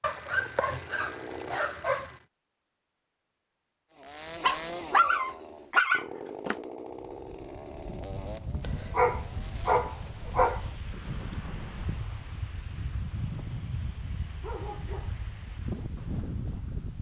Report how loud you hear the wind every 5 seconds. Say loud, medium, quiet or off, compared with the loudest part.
off, medium, loud, loud.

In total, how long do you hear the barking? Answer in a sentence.
You can hear the barking for 7 seconds altogether.